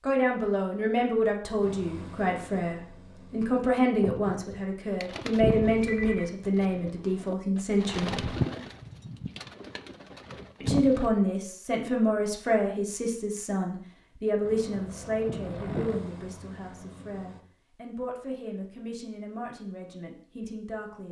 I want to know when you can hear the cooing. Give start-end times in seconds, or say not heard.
4.0-11.1.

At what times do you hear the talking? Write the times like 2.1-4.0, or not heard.
0.0-8.3, 10.6-21.0.